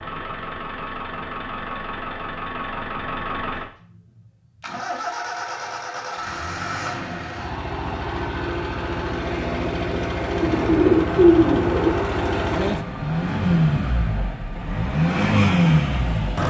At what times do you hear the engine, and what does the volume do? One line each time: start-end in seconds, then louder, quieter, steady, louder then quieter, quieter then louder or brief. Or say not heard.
0.0-16.4 louder.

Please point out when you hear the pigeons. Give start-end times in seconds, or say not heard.
10.4-11.9.